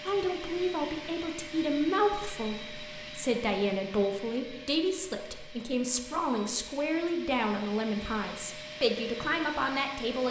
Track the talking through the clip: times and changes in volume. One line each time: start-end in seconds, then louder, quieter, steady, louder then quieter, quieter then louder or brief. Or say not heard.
0.1-10.2 steady.